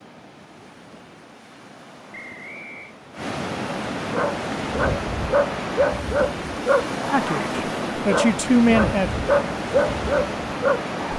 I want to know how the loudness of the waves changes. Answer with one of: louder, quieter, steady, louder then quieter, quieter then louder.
louder.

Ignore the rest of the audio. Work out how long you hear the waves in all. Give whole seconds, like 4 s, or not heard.
11 s.